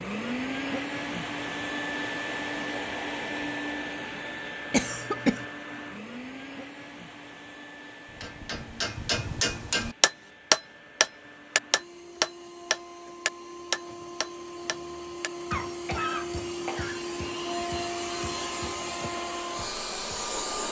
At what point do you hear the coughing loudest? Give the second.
5 s.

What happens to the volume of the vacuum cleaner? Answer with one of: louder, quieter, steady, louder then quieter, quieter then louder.
quieter then louder.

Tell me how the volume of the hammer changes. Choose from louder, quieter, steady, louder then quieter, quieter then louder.
quieter.